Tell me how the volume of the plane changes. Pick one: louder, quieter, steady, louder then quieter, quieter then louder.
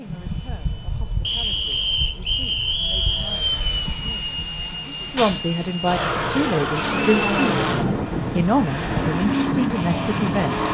louder.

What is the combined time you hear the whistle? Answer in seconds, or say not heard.
3 s.